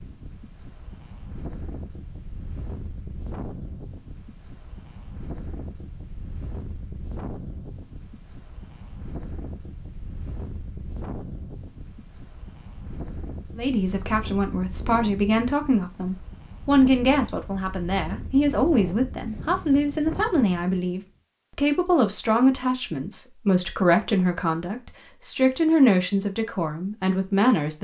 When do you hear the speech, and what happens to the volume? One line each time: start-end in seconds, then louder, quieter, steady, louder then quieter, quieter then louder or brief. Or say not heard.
13.6-27.7 steady.